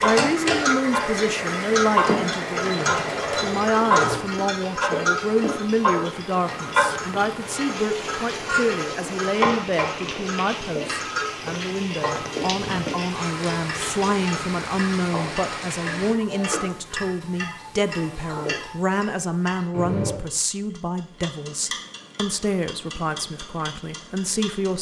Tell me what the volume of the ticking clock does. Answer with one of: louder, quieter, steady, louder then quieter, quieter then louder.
quieter.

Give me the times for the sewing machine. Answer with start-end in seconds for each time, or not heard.
0.0-4.3.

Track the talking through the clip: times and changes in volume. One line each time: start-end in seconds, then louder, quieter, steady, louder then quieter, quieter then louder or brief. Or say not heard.
0.0-24.7 steady.